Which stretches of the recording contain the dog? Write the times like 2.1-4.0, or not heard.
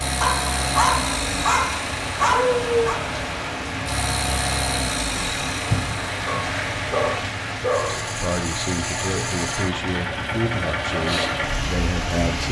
0.2-3.0, 6.2-8.2.